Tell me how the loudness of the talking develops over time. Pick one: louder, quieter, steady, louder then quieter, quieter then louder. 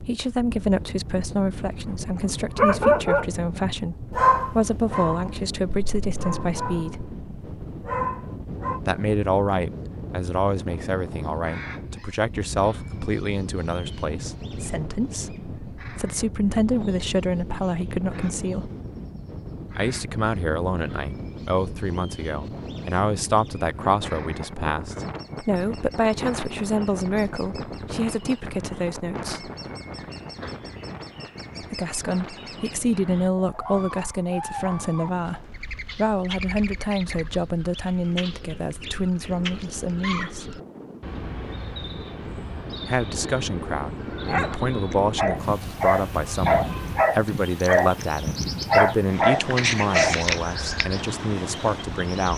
steady.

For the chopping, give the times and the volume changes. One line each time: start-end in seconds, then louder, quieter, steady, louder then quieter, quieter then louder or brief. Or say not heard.
not heard.